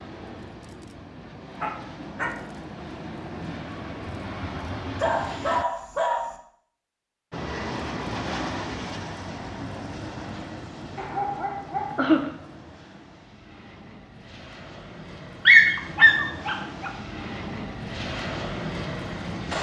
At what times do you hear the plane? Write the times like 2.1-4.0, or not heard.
0.0-5.7, 7.3-19.5.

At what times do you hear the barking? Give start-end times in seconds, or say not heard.
1.6-2.4, 5.0-6.3, 10.9-12.2, 15.4-16.9.